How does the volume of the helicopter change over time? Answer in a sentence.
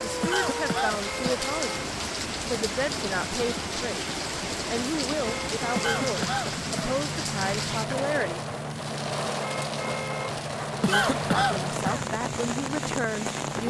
The loudness of the helicopter stays about the same.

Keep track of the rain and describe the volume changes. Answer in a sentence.
The volume of the rain stays about the same.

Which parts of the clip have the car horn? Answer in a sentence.
The car horn can be heard from 1.0 to 1.9 s, from 5.2 to 6.2 s and from 9.4 to 10.3 s.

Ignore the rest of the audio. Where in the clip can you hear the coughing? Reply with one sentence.
The coughing can be heard from 0.2 to 1.4 s, from 5.8 to 7.0 s and from 10.8 to 12.1 s.